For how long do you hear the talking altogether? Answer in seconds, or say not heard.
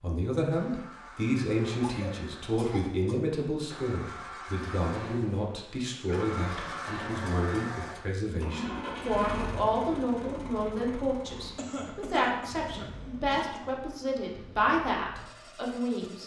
16 s.